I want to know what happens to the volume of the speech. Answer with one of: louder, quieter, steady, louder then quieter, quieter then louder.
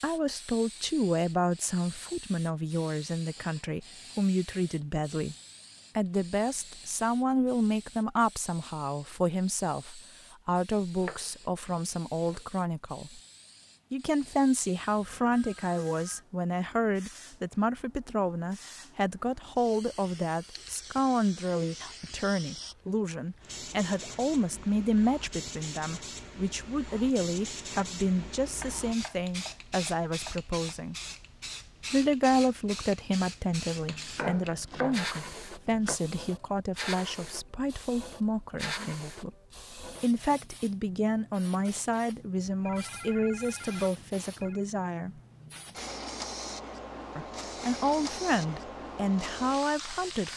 steady.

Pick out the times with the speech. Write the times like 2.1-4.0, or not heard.
0.0-5.3, 6.0-13.2, 13.9-30.9, 31.9-39.3, 40.0-45.1, 47.1-50.3.